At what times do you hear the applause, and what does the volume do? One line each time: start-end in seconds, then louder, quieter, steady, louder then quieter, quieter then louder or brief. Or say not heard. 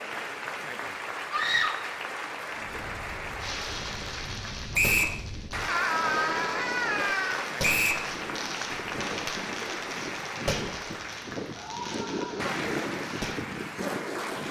0.0-14.4 steady.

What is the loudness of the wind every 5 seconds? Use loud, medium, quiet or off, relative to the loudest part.
medium, loud, loud.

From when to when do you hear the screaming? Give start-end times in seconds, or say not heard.
1.3-1.9, 5.7-7.5, 11.5-12.5.